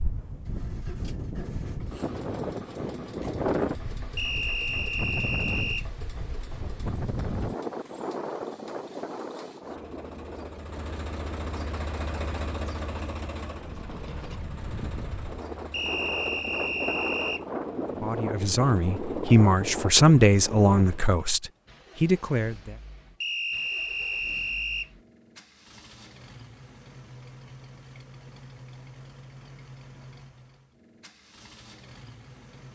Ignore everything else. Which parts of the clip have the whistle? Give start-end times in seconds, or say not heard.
4.2-5.8, 15.7-17.4, 23.2-24.9.